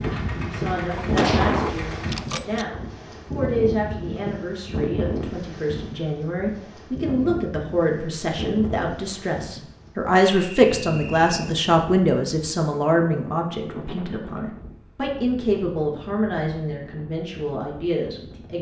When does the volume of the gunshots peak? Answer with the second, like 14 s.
1 s.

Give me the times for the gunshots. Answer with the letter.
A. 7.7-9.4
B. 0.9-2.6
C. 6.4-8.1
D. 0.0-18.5
B.